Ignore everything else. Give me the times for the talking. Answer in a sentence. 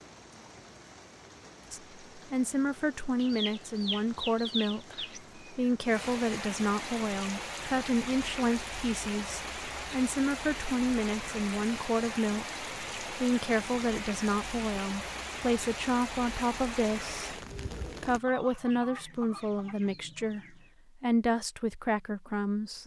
You can hear the talking from 1.7 to 22.8 s.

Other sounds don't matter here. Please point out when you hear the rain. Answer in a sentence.
You can hear the rain from 0.0 to 18.2 s.